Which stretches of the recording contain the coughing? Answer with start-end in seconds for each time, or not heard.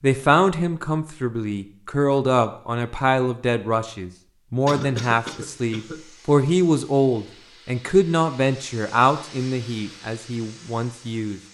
4.7-6.0.